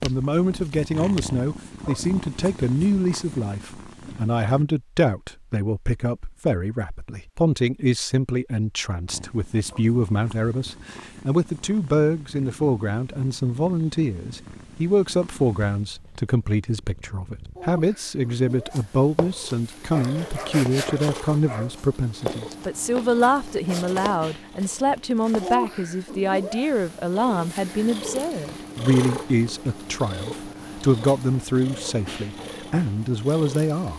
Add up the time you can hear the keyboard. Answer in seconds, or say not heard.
not heard.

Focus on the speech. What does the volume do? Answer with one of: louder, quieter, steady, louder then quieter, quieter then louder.
steady.